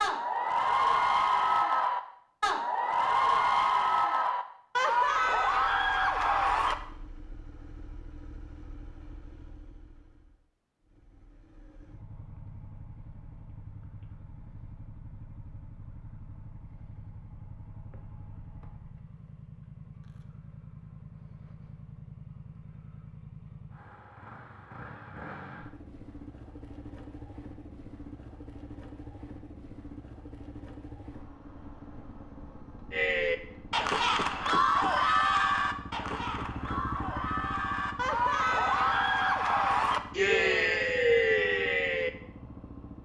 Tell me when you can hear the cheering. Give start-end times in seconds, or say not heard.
0.0-6.8, 32.9-42.1.